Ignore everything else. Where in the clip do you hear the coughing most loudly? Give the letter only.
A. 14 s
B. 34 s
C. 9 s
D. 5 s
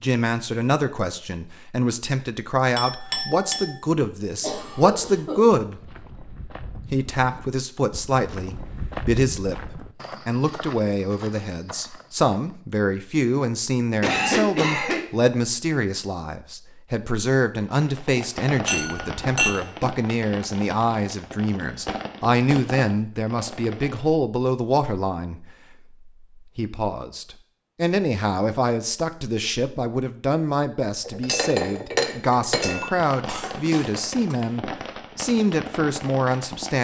A.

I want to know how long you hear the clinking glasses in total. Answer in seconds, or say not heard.
4 s.